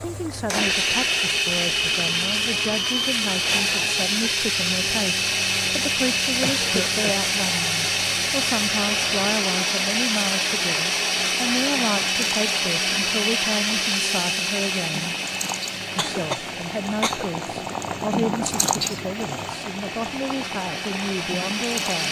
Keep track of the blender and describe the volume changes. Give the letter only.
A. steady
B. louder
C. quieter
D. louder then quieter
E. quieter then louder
C.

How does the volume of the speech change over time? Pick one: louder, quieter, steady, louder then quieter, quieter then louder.
steady.